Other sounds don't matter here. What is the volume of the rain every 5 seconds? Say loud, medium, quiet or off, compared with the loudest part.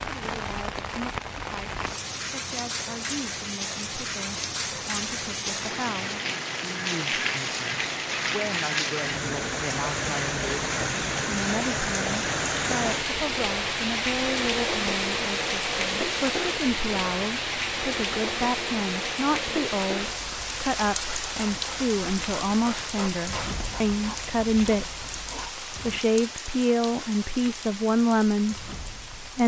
medium, loud, loud, loud, medium, medium.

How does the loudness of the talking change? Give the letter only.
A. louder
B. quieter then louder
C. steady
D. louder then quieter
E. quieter
A.